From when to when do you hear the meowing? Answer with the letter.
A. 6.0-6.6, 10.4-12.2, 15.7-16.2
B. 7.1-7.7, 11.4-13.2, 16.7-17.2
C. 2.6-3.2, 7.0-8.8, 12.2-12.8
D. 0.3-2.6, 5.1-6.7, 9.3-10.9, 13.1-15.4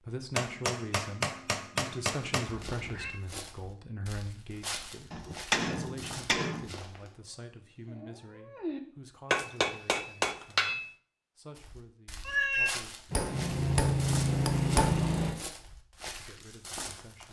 C.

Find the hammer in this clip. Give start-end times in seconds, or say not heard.
0.3-2.6, 5.1-6.7, 9.3-10.9, 13.1-15.4.